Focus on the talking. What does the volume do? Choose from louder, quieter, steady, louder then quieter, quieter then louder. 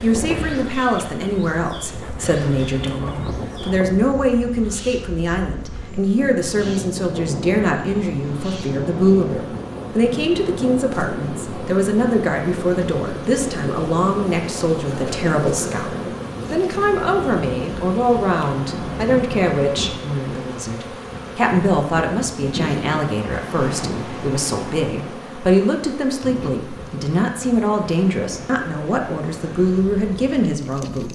steady.